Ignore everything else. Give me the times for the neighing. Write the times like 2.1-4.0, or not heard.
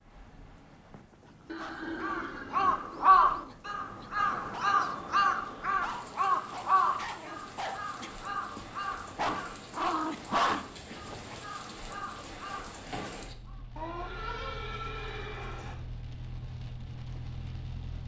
1.4-2.8, 13.8-15.8.